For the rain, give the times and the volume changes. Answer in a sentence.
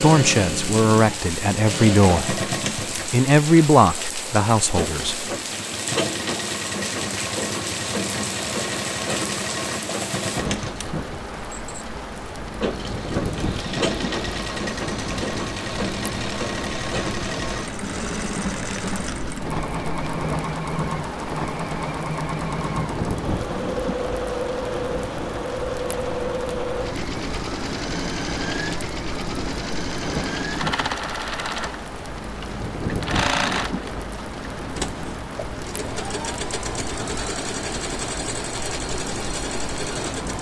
You can hear the rain from 0.0 to 40.3 s, at a steady volume.